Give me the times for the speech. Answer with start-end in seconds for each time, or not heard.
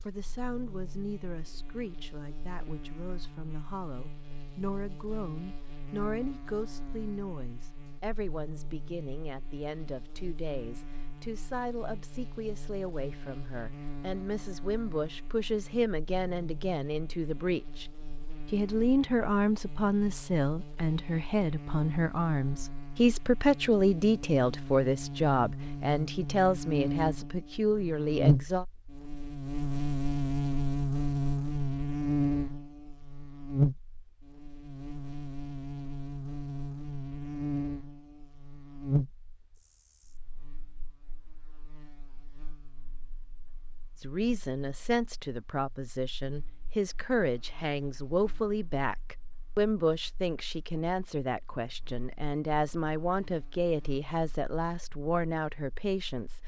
0.1-17.9, 18.5-28.6, 44.0-56.4.